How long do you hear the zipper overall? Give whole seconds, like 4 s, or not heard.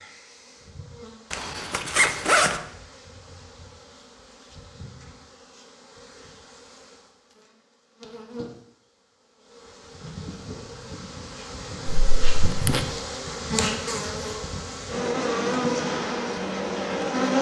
2 s.